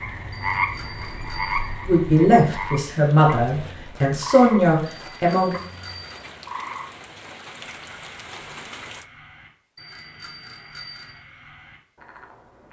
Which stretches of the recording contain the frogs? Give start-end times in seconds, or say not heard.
0.0-12.6.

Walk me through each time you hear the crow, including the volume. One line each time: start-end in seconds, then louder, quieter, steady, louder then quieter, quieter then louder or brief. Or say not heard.
not heard.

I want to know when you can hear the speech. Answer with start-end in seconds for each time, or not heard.
1.9-5.5.